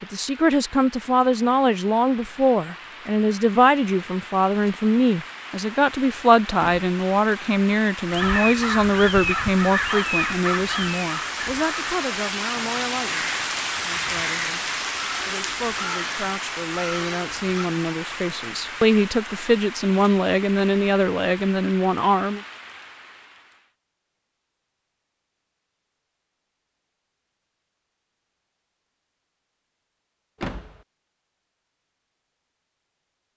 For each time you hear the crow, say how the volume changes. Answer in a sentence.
You can hear the crow from 8.1 to 17.7 s, getting quieter.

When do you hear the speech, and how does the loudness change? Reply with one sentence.
You can hear the speech from 0.0 to 22.4 s, getting quieter then louder.